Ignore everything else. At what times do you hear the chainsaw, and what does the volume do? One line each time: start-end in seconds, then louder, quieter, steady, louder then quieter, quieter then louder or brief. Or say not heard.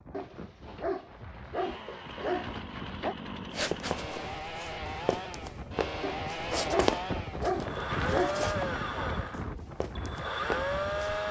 1.5-11.2 louder.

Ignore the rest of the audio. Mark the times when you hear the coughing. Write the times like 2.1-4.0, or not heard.
not heard.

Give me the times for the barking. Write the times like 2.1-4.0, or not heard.
0.1-3.1, 6.0-8.4.